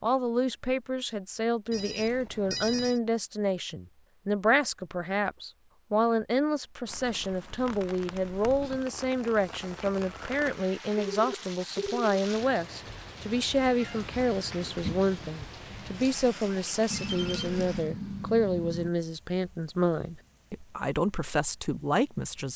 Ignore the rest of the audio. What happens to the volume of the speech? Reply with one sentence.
The loudness of the speech stays about the same.